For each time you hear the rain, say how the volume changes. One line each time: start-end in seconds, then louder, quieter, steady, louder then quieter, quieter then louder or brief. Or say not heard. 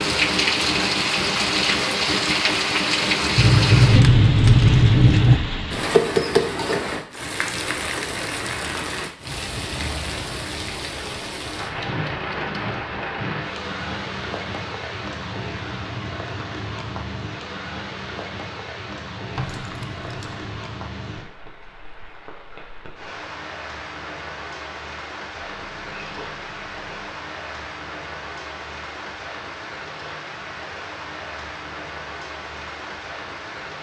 0.0-33.7 quieter.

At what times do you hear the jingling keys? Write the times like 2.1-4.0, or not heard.
3.4-5.4, 19.4-20.6, 25.4-27.1.